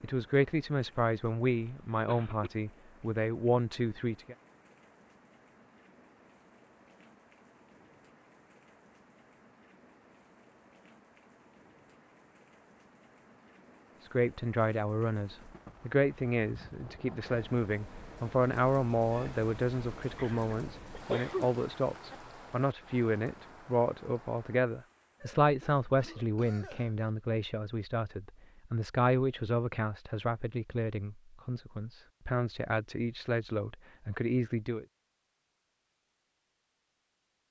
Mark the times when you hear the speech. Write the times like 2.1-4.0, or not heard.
0.0-4.3, 14.0-34.9.